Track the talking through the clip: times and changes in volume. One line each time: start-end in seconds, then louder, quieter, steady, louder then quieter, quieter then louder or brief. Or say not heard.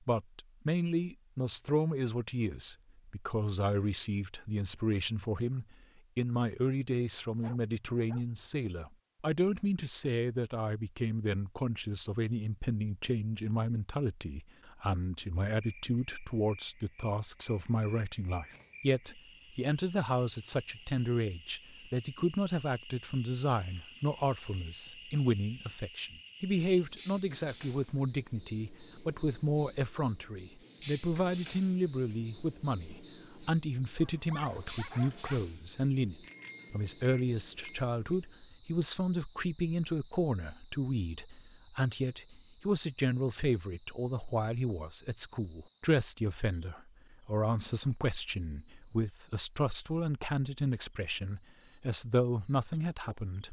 0.1-53.4 steady.